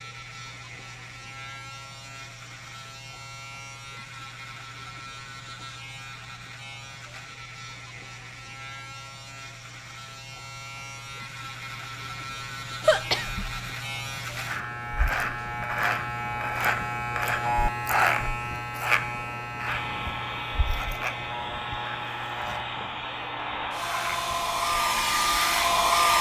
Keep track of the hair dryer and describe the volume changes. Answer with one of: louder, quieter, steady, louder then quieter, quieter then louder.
louder.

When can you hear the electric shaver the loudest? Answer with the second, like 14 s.
18 s.